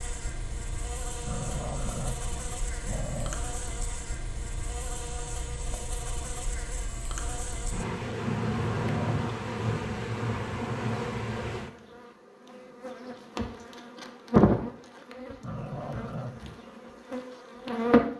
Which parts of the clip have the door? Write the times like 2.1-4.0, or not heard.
not heard.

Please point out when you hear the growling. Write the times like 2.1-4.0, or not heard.
1.2-3.4, 8.6-9.3, 15.4-16.6.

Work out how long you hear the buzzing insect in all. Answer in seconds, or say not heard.
18 s.